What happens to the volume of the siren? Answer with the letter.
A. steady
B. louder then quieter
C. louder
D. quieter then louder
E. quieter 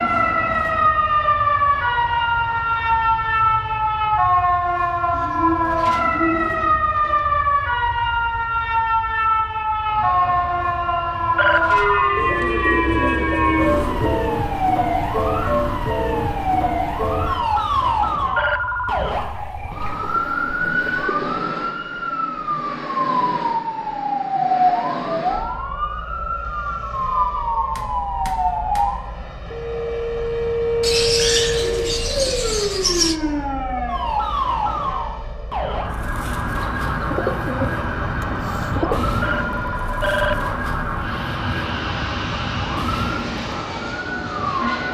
E.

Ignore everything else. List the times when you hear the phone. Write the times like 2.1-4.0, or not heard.
11.3-12.1, 18.4-19.1, 39.2-40.5.